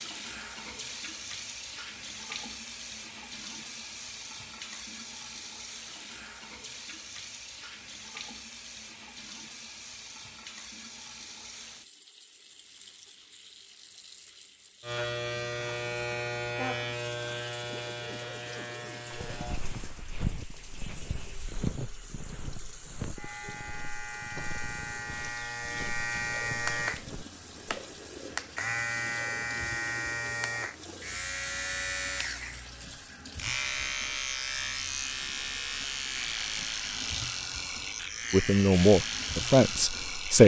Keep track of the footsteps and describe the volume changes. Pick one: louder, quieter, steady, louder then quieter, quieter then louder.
quieter.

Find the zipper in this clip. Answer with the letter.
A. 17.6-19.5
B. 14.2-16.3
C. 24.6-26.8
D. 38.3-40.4
A.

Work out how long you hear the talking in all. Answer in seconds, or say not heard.
2 s.